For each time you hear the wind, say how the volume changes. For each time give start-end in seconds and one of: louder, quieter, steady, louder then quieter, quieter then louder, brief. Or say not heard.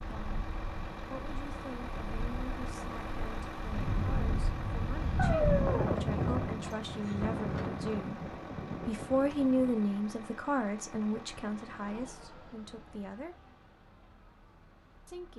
0.0-9.8 louder then quieter.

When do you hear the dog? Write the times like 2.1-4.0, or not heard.
5.2-6.0.